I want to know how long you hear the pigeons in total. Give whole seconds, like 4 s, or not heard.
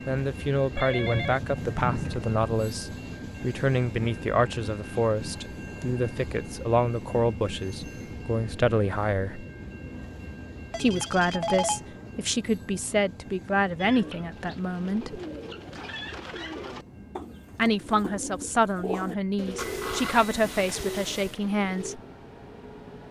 8 s.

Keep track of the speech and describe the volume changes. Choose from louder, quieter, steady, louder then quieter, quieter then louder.
steady.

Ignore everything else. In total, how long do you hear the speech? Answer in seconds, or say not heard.
18 s.